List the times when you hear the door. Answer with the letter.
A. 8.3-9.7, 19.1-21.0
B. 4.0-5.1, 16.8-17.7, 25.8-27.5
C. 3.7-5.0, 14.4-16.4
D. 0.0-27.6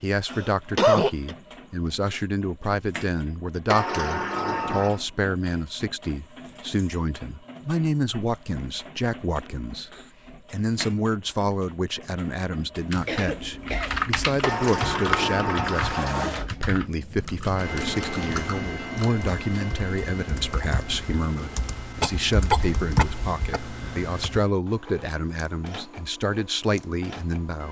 C.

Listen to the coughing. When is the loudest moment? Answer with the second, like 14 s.
1 s.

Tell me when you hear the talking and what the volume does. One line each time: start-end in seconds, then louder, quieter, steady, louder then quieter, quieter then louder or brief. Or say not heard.
0.0-27.6 steady.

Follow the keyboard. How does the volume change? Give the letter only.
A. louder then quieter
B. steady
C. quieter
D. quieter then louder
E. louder
D.